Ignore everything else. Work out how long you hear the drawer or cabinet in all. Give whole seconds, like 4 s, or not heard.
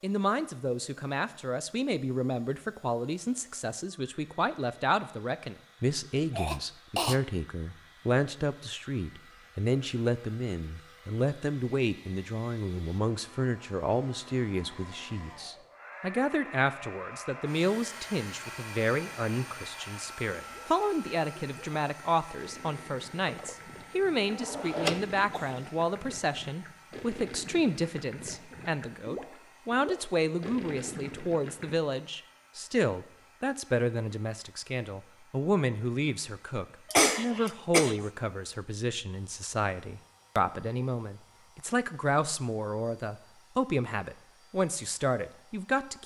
2 s.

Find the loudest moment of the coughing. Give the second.
37 s.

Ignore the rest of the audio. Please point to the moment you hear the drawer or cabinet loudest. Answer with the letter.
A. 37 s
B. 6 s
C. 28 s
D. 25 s
D.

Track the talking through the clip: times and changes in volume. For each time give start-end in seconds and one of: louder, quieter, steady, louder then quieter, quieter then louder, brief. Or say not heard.
0.0-46.0 steady.